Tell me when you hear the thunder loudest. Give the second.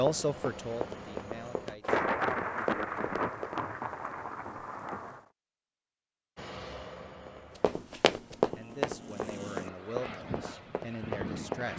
2 s.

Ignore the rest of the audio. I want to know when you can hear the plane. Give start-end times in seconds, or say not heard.
0.0-1.8, 6.3-11.7.